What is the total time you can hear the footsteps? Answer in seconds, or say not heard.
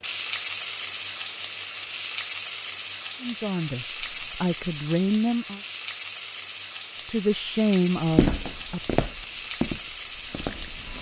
3 s.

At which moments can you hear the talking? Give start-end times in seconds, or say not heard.
3.2-5.6, 7.0-9.0.